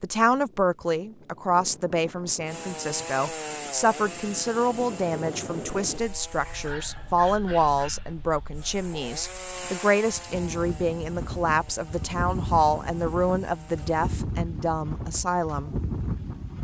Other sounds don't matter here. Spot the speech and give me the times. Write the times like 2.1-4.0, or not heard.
0.0-15.8.